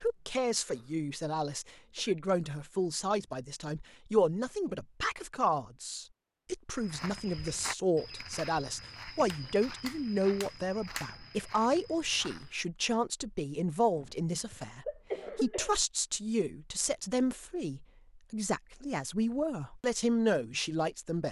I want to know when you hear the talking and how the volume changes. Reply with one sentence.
The talking can be heard from 0.0 to 21.2 s, at a steady volume.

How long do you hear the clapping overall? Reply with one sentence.
You can hear the clapping for 2 seconds altogether.